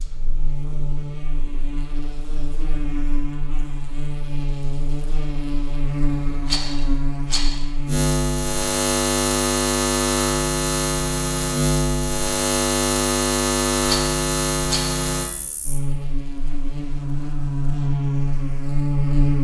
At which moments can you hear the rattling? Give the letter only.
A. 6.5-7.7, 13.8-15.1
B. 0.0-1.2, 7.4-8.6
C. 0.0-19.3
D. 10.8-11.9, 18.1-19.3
A.